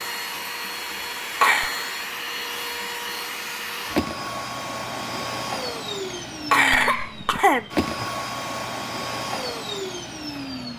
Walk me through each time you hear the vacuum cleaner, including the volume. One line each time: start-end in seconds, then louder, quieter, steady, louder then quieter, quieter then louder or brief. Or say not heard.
0.0-10.7 steady.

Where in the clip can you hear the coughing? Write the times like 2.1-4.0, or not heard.
1.0-1.7, 6.5-8.1.